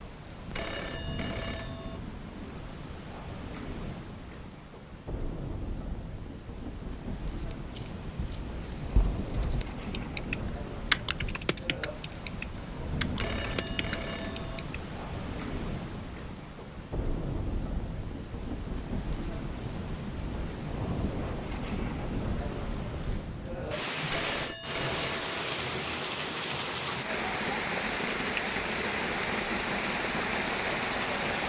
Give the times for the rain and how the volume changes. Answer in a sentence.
The rain can be heard from 0.0 to 31.4 s, getting louder.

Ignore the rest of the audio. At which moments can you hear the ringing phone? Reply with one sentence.
You can hear the ringing phone from 0.5 to 2.0 s, from 13.1 to 14.7 s and from 24.0 to 25.6 s.